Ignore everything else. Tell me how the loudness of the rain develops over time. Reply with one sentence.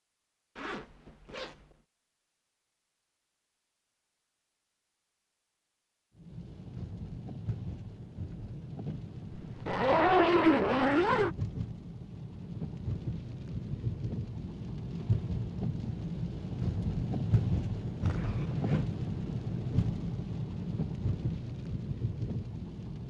The loudness of the rain goes up.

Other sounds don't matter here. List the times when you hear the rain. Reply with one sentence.
The rain can be heard from 6.2 to 23.0 s.